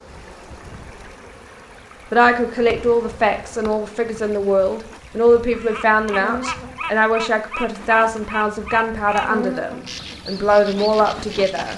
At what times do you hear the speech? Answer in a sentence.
You can hear the speech from 2.1 to 11.7 s.